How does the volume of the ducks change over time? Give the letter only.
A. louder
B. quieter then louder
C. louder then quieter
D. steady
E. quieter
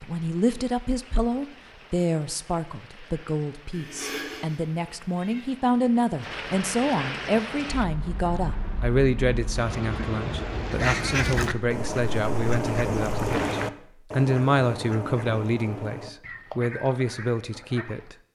E.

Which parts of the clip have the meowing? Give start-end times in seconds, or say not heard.
3.7-5.5.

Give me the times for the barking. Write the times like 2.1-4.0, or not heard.
not heard.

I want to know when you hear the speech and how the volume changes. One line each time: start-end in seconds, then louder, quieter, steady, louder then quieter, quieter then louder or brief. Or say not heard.
0.0-18.1 steady.